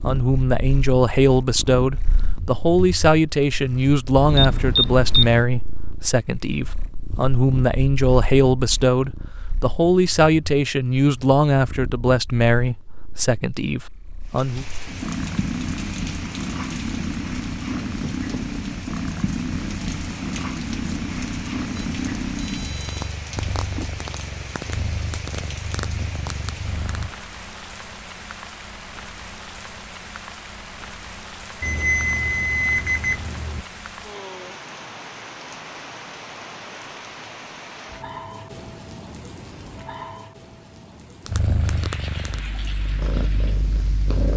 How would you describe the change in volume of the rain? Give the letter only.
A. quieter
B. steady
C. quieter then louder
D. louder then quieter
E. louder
B.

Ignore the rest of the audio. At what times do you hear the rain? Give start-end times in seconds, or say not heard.
14.2-44.3.